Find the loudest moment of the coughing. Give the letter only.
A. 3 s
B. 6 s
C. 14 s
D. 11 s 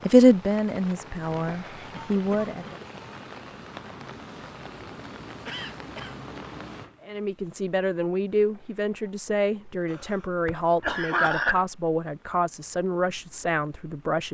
D.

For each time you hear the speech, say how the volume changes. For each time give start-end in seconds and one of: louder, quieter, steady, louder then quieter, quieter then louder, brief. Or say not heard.
0.1-2.8 brief
7.0-14.3 steady.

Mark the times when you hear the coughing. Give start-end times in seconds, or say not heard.
1.9-2.9, 5.5-6.2, 9.9-11.7.